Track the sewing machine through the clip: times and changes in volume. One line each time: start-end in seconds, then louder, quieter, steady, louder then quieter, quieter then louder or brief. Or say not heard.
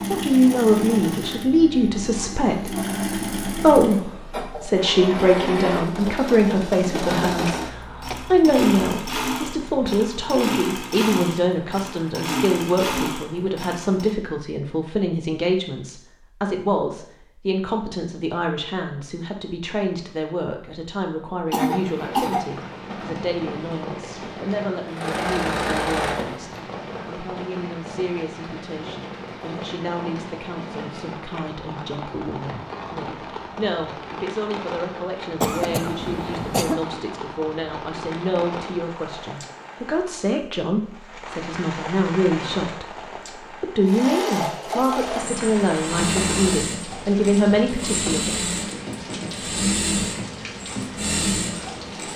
0.0-14.2 steady
24.9-26.4 brief
43.8-52.1 steady.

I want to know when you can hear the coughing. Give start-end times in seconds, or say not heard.
7.2-8.4, 21.5-22.5, 35.4-36.8.